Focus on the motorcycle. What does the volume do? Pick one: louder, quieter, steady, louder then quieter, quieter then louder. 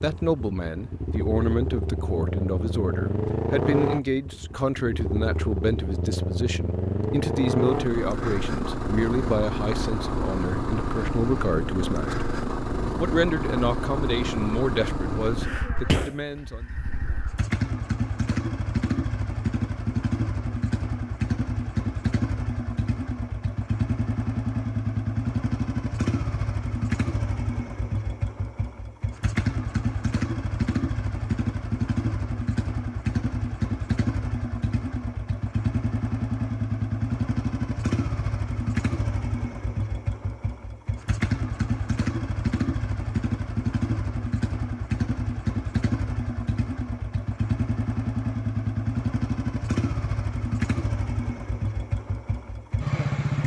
steady.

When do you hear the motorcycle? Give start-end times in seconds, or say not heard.
0.0-53.4.